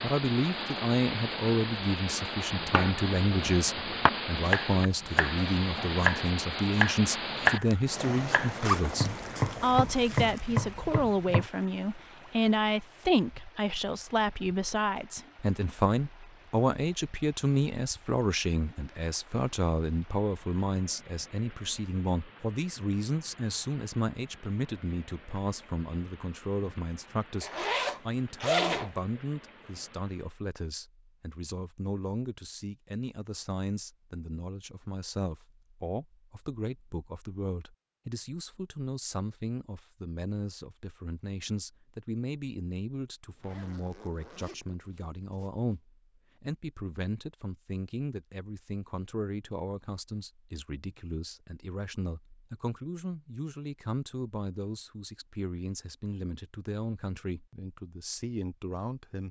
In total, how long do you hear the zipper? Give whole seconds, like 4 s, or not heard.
6 s.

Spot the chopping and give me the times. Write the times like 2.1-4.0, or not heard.
2.5-11.4.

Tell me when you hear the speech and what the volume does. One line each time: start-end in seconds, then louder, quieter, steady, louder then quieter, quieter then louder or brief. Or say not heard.
0.0-59.2 quieter.